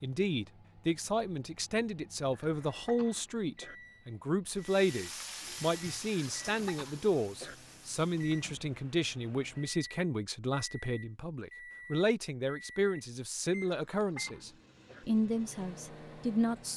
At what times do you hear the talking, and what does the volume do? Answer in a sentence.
You can hear the talking from 0.0 to 16.7 s, at a steady volume.